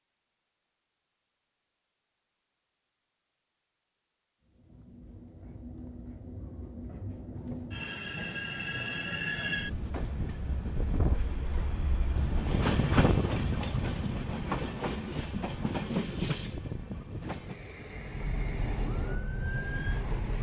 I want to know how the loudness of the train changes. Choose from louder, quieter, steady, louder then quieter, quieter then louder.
louder then quieter.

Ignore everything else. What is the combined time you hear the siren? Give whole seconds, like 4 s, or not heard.
2 s.